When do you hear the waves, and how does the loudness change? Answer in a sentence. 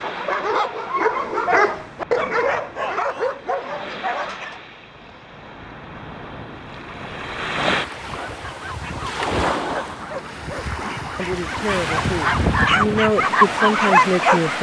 The waves can be heard from 0.0 to 14.5 s, getting louder.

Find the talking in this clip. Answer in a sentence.
The talking can be heard from 11.2 to 14.5 s.